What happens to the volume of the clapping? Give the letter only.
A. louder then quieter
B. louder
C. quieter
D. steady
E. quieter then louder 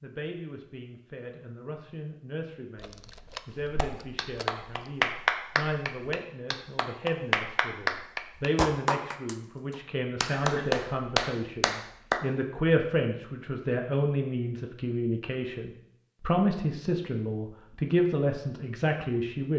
E.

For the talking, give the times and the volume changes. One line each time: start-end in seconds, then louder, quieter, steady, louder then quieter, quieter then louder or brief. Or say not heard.
0.0-19.5 louder.